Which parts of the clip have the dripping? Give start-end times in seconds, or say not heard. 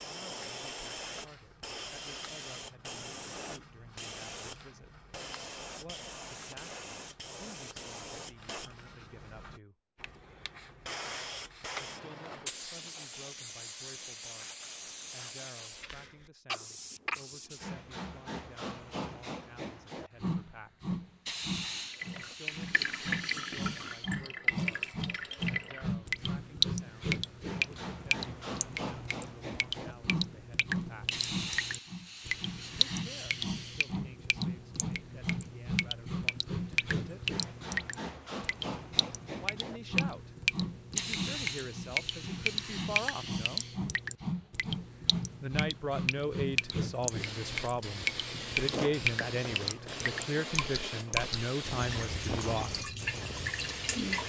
21.9-54.2.